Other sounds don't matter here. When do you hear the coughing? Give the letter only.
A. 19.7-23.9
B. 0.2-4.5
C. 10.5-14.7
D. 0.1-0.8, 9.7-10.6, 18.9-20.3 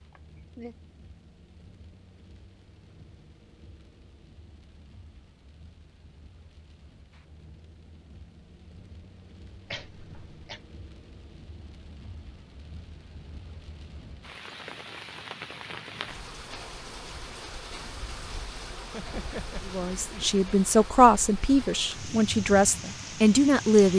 D.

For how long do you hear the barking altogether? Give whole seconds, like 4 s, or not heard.
not heard.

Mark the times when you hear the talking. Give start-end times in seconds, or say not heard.
19.7-23.9.